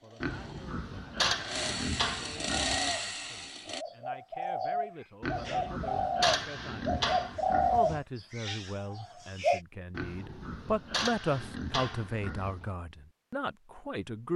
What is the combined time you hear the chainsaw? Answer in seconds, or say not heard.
4 s.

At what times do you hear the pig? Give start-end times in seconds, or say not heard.
0.2-3.0, 5.2-8.0, 9.9-12.7.